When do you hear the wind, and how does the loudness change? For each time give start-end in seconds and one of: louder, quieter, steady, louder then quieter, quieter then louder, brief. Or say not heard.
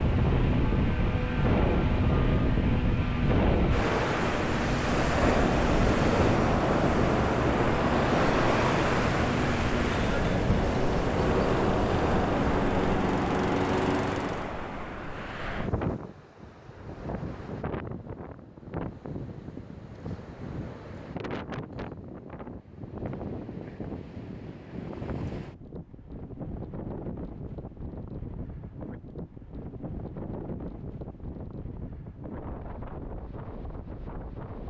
0.0-34.6 quieter.